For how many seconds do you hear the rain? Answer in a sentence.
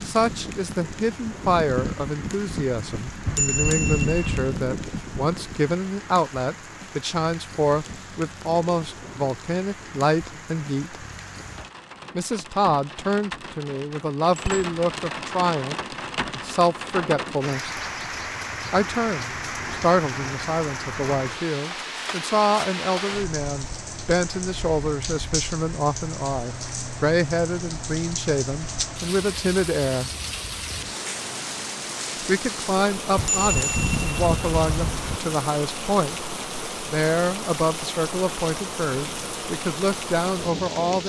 You can hear the rain for 41 seconds altogether.